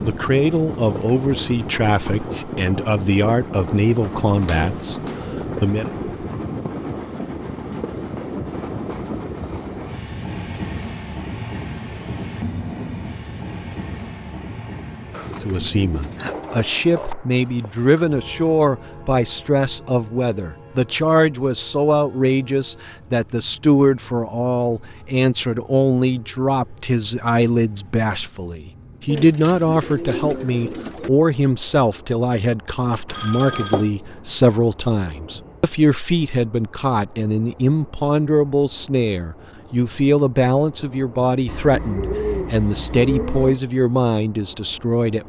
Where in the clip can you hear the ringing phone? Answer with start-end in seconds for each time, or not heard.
17.4-18.1, 33.0-33.9.